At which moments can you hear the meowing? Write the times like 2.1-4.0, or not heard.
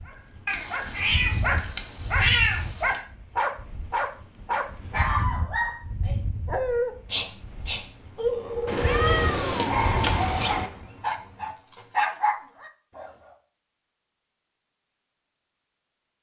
0.5-3.0, 8.7-10.7.